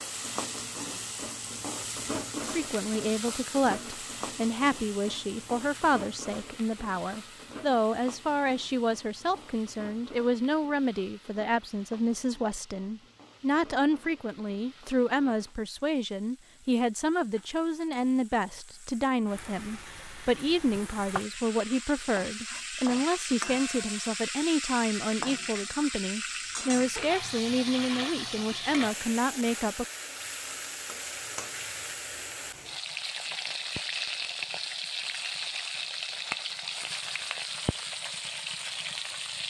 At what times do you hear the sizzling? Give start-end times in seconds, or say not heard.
0.0-39.4.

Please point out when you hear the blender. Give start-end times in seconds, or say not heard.
not heard.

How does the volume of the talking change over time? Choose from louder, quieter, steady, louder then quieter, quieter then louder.
steady.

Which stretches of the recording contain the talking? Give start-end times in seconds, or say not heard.
2.4-29.9.